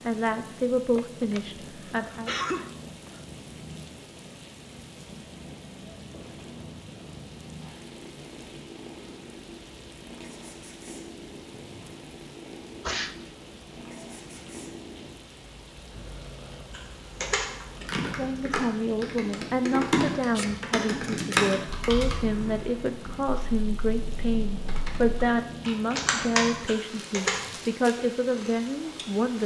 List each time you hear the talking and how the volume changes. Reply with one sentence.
You can hear the talking briefly from 0.0 to 2.4 s; and from 18.1 to 29.4 s, at a steady volume.